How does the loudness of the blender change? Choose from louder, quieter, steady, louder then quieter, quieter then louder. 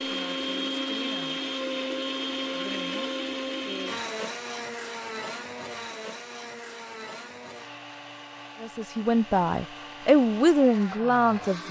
quieter.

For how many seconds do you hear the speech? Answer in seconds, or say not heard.
3 s.